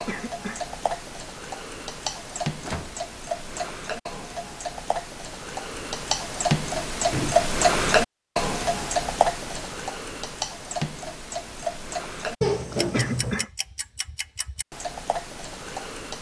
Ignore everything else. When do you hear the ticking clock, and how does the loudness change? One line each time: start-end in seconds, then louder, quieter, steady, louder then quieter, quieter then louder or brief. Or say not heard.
0.0-16.1 louder then quieter.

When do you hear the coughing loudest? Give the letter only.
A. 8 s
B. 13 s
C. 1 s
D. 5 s
B.